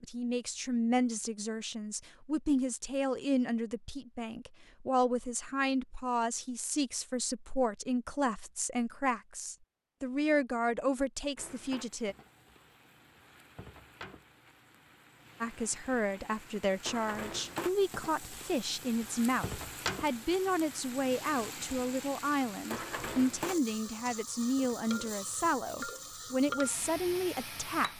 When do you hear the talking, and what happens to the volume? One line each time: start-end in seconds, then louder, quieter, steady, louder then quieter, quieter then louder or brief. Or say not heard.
0.0-12.2 steady
15.4-27.9 steady.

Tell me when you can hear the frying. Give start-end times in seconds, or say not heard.
11.3-27.9.